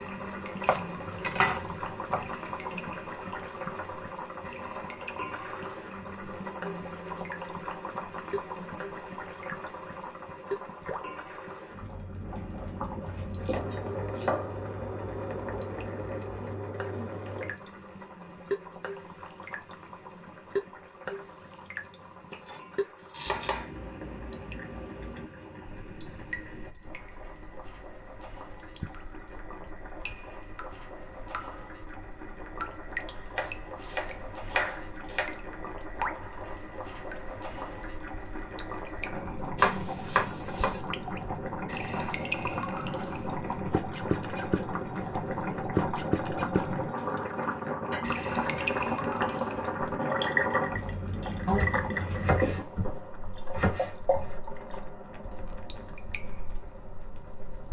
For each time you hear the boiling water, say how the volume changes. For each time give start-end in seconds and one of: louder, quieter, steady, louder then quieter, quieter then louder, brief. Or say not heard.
0.0-57.6 quieter then louder.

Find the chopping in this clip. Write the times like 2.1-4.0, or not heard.
0.7-2.3, 13.0-14.6, 22.3-23.7, 33.4-35.4, 39.5-40.8, 51.5-54.4.